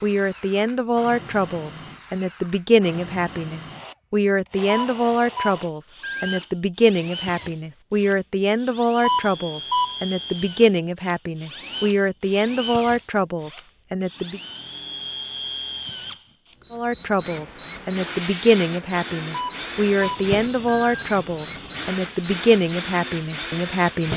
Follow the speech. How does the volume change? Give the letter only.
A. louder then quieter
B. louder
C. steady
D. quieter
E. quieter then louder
C.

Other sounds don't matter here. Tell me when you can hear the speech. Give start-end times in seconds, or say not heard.
0.0-14.4, 16.7-24.1.